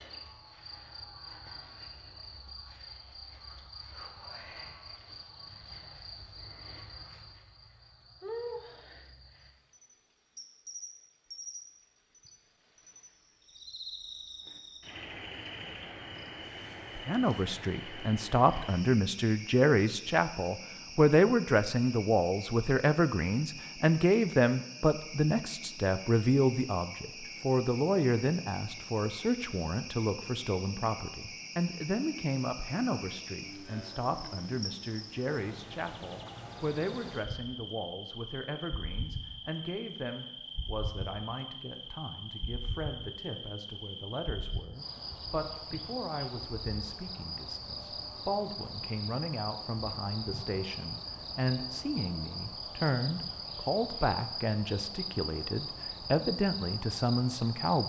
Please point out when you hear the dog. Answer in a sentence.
You can't hear the dog here.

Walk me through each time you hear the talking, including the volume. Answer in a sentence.
You can hear the talking from 16.9 to 57.8 s, getting quieter then louder.